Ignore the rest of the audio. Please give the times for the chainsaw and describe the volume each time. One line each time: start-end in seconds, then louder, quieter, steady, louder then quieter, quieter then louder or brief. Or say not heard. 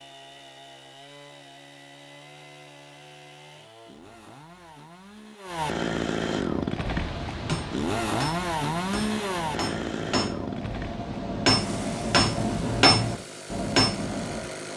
0.0-14.7 louder then quieter.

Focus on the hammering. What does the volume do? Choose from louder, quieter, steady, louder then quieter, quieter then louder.
louder.